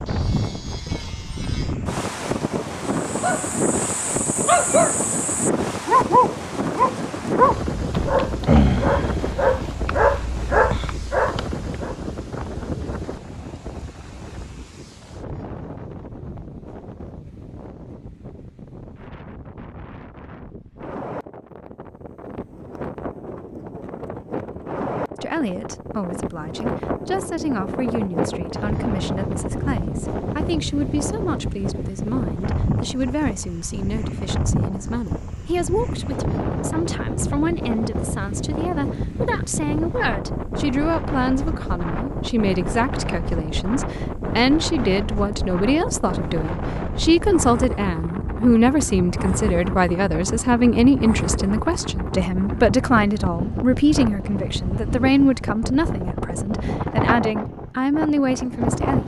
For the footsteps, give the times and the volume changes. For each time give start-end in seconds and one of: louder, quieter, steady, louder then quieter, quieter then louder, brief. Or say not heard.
not heard.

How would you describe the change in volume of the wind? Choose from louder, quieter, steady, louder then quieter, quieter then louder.
quieter then louder.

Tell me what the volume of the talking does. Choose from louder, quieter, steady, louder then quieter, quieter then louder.
louder.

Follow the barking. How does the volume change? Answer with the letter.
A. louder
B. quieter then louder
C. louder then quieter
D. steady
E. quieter
D.